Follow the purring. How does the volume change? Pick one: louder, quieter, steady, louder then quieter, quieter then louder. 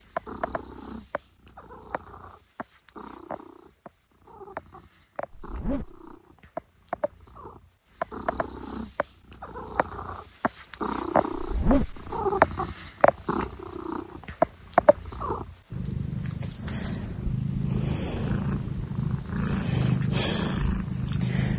louder.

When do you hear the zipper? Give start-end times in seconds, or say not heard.
5.3-6.0, 11.3-12.1.